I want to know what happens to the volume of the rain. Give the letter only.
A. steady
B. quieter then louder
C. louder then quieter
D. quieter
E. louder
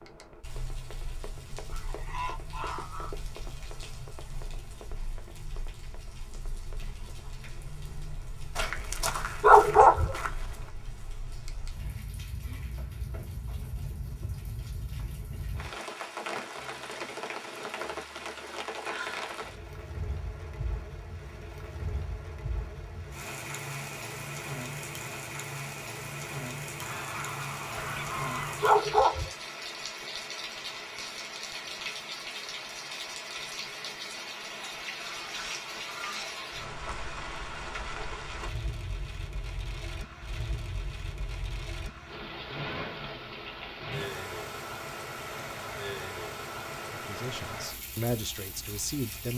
E.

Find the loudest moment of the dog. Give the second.
10 s.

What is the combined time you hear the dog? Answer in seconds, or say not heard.
3 s.